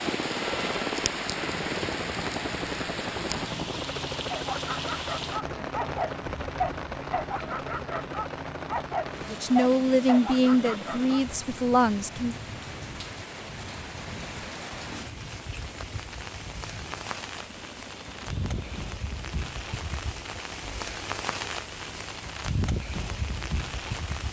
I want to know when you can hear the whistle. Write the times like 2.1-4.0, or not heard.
not heard.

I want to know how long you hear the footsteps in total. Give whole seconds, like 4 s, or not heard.
not heard.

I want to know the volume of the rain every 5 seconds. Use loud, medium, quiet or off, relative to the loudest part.
loud, medium, medium, medium, loud.